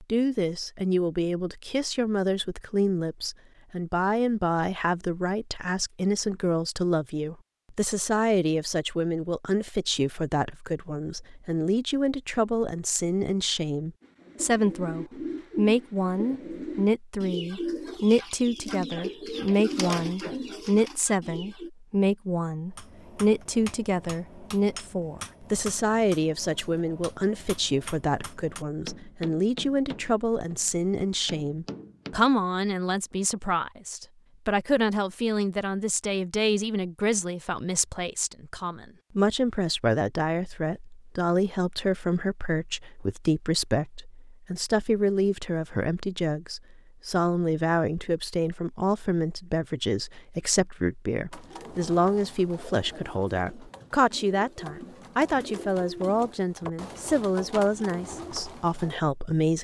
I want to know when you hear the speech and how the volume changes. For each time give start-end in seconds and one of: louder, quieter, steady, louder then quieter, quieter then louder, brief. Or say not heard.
0.0-59.6 steady.